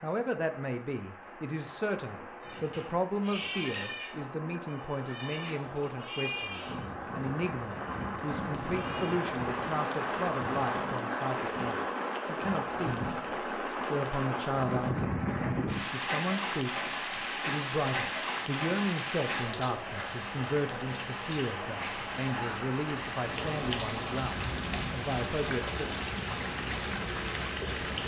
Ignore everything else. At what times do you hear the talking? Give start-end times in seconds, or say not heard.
0.0-13.2, 13.9-15.2, 15.9-26.0.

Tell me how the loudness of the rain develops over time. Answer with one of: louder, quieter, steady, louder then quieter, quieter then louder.
louder.